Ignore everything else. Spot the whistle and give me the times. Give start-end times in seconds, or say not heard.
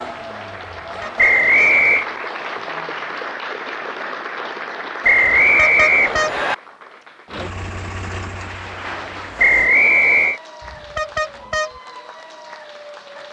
1.1-2.0, 5.0-6.5, 9.3-10.4.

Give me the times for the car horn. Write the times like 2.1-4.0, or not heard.
0.8-1.8, 5.4-6.3, 10.6-11.7.